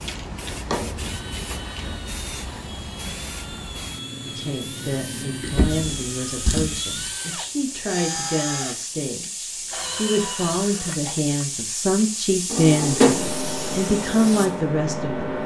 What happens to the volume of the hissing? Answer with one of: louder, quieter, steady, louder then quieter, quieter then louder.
louder.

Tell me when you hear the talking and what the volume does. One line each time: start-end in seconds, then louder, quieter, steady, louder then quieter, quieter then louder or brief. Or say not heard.
4.2-15.4 louder.